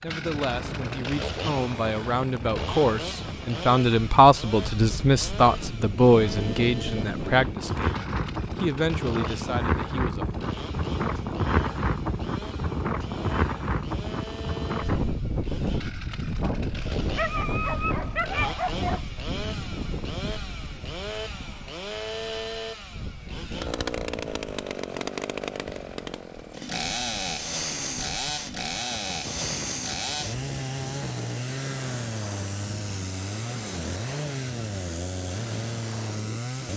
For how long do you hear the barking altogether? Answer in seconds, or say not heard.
2 s.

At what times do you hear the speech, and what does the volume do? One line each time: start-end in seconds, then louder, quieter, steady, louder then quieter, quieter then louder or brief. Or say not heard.
0.0-10.4 louder then quieter.